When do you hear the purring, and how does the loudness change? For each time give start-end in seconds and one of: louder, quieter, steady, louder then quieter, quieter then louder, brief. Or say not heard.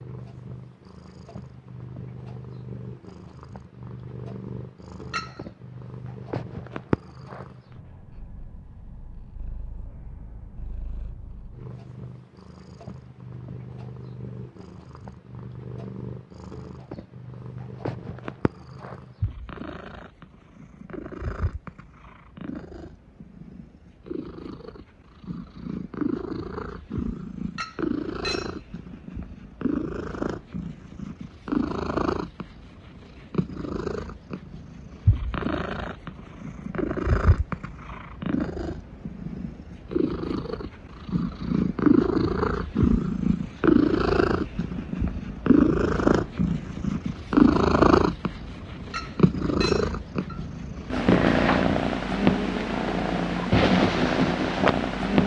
0.0-55.2 louder.